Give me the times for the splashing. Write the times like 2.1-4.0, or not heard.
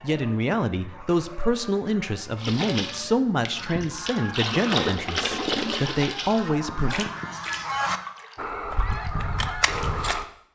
2.4-10.2.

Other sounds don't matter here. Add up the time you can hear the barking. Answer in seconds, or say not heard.
not heard.